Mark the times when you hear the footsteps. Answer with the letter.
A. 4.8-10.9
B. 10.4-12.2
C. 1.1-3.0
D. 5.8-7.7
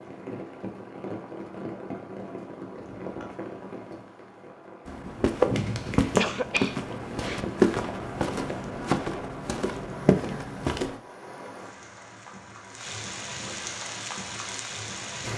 A.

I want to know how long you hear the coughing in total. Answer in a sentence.
You can hear the coughing for 2 seconds altogether.